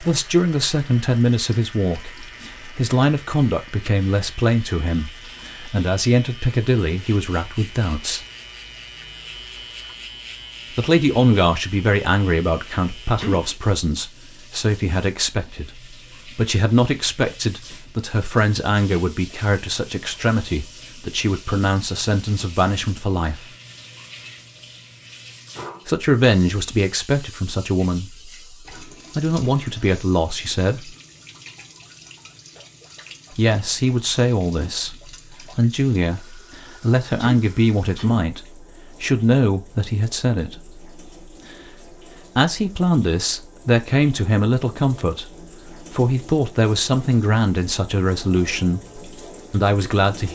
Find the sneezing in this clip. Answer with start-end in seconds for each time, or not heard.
13.2-13.6, 37.1-38.3.